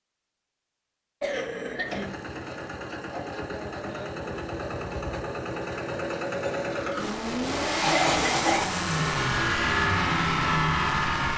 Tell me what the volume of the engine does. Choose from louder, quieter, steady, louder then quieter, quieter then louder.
louder.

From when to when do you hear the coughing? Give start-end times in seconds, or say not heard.
1.2-2.1, 7.8-8.8.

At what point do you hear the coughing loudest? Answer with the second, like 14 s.
8 s.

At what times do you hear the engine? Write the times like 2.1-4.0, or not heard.
1.8-11.3.